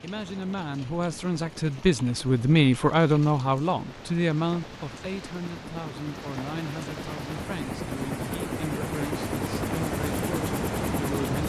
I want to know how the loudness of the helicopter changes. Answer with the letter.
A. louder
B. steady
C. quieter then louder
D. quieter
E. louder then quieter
A.